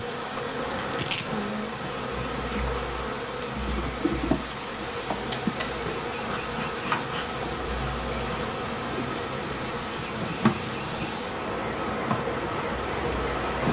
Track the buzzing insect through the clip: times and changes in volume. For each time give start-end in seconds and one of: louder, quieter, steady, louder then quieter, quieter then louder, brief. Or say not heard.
0.0-13.6 steady.